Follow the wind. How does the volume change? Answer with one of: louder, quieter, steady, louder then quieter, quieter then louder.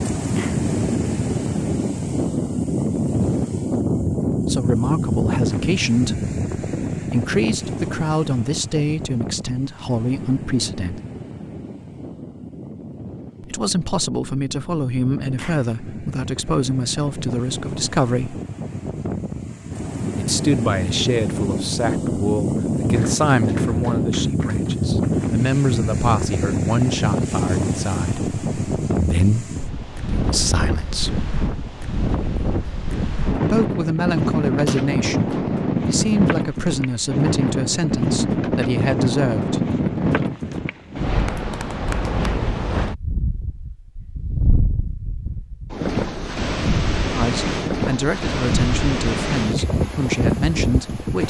quieter then louder.